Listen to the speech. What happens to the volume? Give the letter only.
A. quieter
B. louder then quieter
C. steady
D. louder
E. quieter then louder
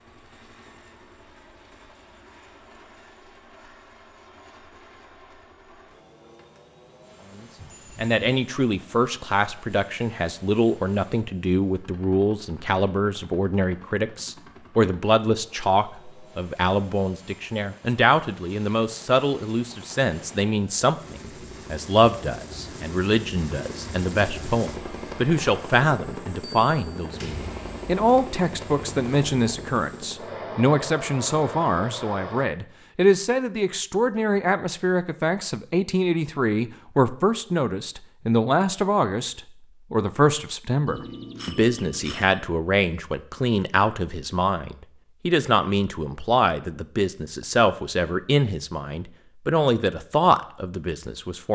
C.